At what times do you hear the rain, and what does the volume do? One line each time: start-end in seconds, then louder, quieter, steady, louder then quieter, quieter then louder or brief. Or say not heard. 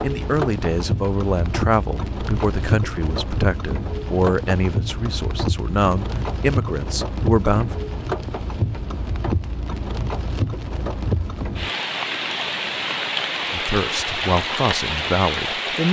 0.0-15.8 steady.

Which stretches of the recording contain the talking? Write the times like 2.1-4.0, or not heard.
0.0-7.8, 13.5-15.8.